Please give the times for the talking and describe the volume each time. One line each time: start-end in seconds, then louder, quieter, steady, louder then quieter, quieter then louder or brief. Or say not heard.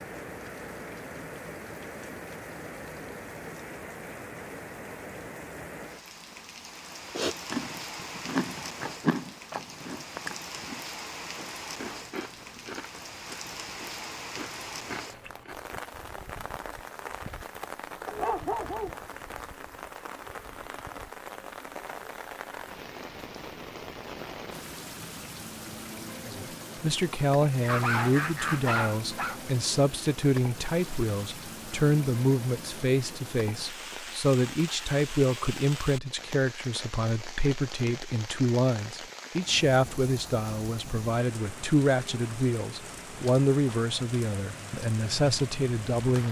26.2-46.2 steady.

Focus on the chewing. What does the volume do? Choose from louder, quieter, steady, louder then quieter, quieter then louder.
quieter.